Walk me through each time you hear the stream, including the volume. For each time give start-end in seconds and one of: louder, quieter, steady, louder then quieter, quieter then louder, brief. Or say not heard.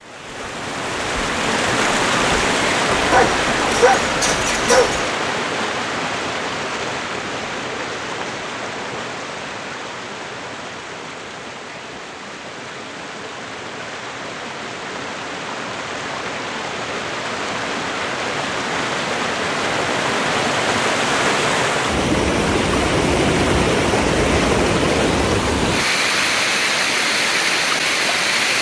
0.0-28.5 quieter then louder.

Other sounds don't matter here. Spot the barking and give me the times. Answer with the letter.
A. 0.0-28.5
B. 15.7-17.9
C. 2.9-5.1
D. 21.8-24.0
C.